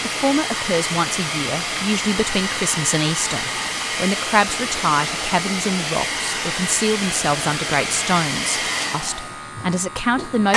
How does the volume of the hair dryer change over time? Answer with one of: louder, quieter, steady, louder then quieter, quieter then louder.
steady.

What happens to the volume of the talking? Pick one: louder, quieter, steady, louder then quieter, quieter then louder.
steady.